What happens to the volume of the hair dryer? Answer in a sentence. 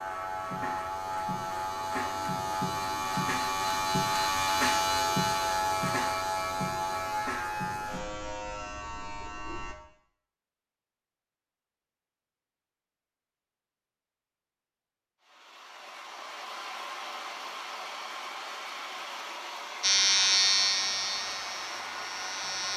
The volume of the hair dryer stays about the same.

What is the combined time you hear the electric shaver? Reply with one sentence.
The electric shaver can be heard for 13 seconds in total.